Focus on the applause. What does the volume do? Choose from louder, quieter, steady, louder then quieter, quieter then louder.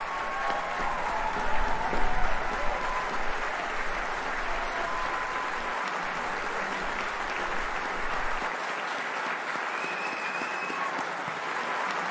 steady.